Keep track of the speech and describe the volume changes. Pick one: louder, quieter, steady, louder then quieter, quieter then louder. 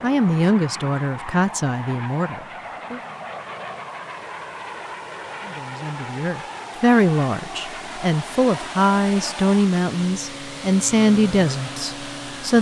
quieter then louder.